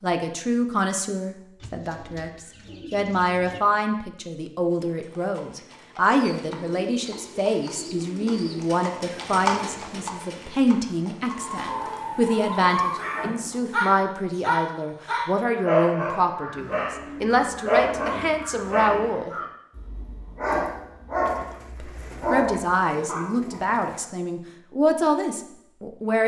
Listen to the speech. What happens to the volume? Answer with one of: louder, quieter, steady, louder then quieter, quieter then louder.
steady.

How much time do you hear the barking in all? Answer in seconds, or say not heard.
12 s.